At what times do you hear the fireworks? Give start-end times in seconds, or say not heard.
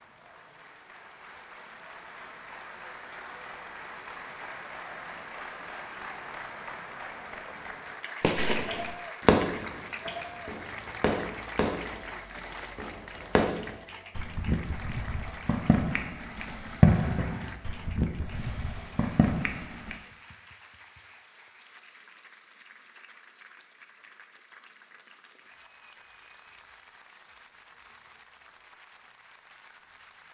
8.2-19.9.